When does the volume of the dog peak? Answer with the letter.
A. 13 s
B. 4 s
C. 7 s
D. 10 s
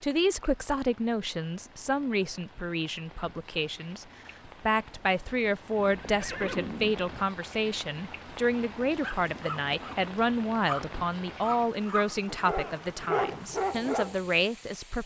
A.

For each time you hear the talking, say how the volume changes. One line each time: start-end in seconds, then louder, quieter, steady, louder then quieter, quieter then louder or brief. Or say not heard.
0.0-15.0 steady.